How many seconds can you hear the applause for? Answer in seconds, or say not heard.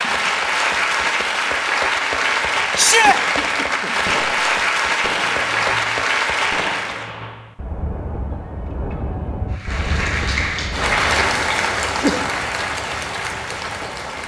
12 s.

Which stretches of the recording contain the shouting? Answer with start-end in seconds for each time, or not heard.
2.8-3.2.